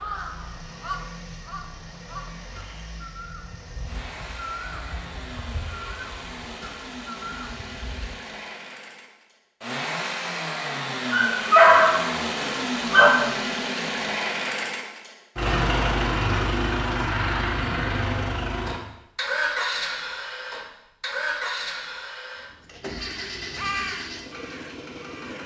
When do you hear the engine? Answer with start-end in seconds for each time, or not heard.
0.0-25.4.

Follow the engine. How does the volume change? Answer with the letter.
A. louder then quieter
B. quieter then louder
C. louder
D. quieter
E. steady
A.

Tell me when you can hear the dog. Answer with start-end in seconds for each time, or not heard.
11.1-13.1.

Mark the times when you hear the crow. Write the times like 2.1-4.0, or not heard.
0.0-8.2, 22.9-25.4.